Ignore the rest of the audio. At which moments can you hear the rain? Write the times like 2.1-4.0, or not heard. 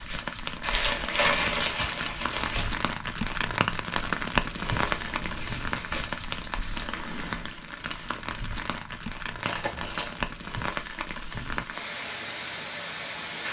0.0-13.4.